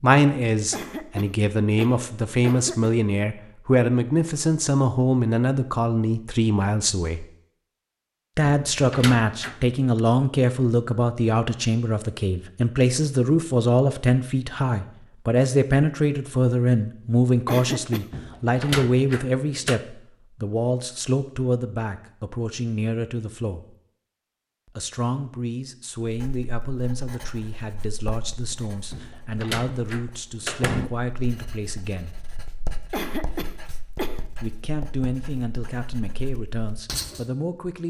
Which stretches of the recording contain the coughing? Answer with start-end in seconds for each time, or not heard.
0.7-2.9, 17.4-18.1, 32.9-34.2.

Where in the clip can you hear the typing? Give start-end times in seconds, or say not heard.
not heard.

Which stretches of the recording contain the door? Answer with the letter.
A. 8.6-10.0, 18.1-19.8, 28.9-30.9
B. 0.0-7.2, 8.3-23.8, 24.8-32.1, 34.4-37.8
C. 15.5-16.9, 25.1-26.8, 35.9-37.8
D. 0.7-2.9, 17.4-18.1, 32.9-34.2
A.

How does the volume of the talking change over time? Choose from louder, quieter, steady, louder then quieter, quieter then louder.
quieter.